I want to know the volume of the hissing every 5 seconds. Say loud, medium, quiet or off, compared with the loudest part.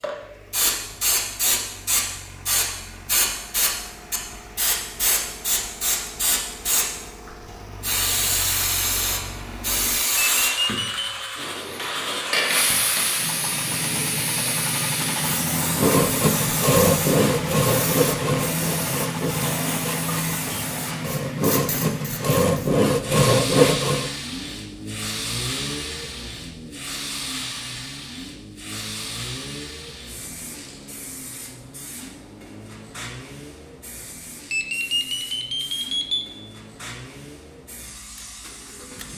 loud, loud, loud, medium, medium, medium, quiet, quiet.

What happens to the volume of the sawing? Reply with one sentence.
The volume of the sawing goes down, then up.